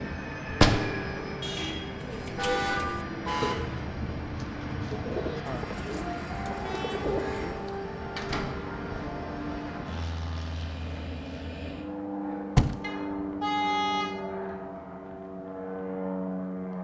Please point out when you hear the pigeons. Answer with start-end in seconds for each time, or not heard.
1.9-7.8.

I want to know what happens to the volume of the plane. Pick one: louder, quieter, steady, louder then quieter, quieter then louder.
steady.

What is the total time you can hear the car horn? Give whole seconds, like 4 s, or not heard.
4 s.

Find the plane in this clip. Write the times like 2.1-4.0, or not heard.
0.0-16.7.